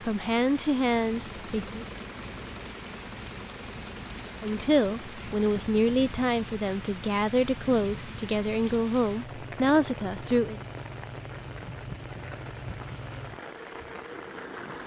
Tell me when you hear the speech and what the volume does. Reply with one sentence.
The speech can be heard briefly from 0.1 to 1.9 s; and from 4.4 to 10.6 s, at a steady volume.